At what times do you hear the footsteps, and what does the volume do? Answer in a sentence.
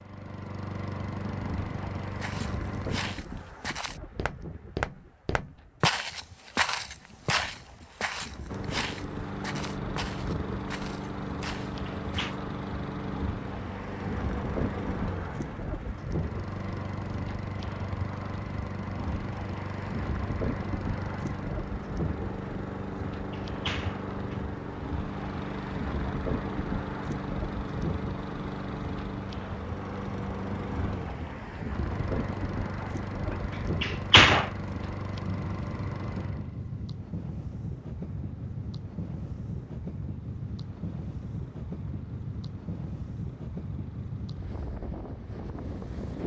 The footsteps can be heard from 2.2 to 12.3 s, getting louder then quieter.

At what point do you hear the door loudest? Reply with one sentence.
The volume of the door peaks at 34 seconds.